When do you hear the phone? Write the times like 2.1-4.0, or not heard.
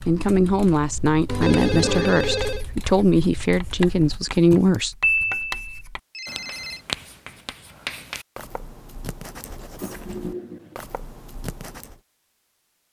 1.2-2.6, 5.0-6.8, 9.8-10.8.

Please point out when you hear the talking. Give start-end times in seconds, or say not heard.
0.1-5.0.